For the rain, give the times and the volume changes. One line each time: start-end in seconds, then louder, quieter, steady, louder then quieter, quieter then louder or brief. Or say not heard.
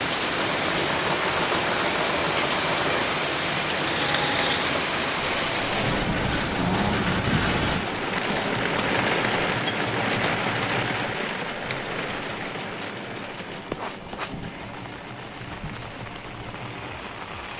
0.0-17.5 quieter.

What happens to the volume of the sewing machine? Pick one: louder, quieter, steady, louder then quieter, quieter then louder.
quieter.